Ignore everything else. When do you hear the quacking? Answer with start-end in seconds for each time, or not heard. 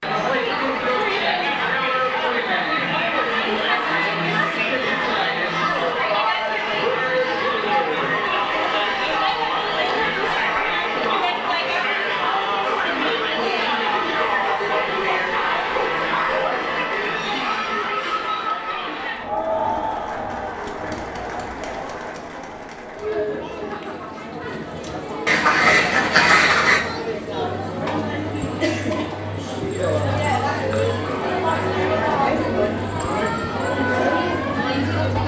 25.2-26.8.